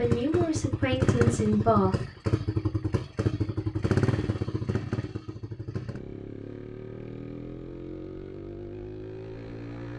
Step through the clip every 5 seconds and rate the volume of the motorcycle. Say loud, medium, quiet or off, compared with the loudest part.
loud, medium.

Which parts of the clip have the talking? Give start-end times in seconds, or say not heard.
0.0-1.9.